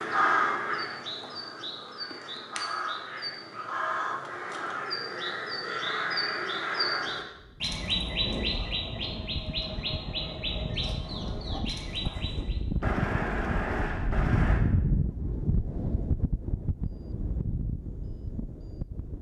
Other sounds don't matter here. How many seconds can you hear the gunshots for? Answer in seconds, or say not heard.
3 s.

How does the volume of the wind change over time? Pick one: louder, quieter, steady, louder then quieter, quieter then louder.
louder then quieter.